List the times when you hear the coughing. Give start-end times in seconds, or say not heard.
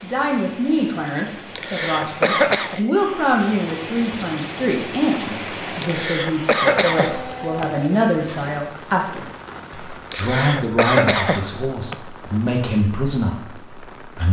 1.6-2.8, 5.8-7.7, 10.1-11.9.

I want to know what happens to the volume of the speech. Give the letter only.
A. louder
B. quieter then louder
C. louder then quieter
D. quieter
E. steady
E.